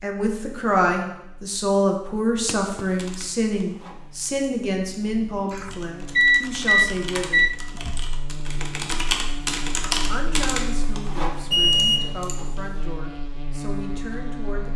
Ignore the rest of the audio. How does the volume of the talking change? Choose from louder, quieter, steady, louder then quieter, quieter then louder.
quieter.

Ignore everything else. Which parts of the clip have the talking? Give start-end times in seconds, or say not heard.
0.0-7.5, 10.1-14.7.